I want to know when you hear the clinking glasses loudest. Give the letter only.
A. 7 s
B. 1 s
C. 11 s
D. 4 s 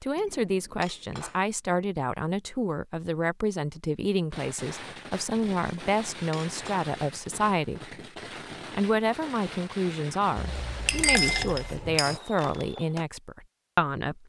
C.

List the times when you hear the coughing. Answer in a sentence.
You can't hear the coughing here.